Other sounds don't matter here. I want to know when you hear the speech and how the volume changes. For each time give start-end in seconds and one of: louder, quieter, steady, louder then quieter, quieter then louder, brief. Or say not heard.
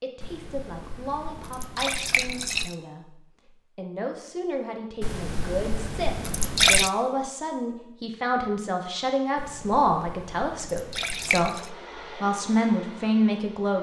0.0-13.7 louder.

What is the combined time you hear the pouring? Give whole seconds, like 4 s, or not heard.
7 s.